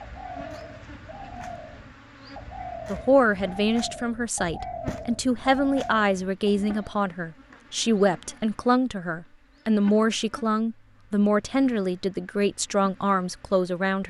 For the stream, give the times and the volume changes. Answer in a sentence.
You can't hear the stream here.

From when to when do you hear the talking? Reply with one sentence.
The talking can be heard from 2.9 to 14.0 s.